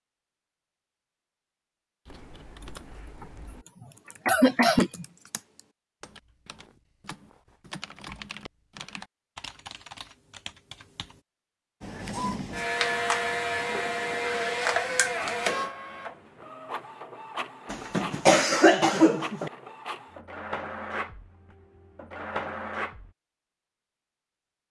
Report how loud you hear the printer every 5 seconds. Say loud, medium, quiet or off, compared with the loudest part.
off, off, loud, medium, medium.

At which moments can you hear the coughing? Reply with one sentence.
The coughing can be heard from 2.6 to 5.0 s and from 17.7 to 19.5 s.